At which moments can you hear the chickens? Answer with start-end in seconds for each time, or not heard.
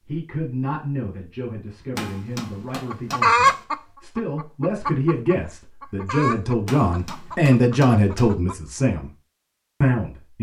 2.9-8.6.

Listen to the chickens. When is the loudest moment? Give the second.
3 s.